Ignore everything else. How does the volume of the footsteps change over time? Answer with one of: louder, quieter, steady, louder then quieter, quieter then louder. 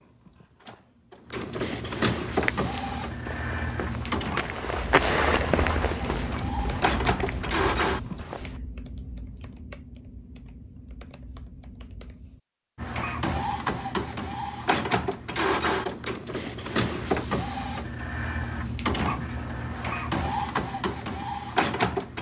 louder then quieter.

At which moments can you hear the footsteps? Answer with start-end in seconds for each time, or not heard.
2.2-8.6.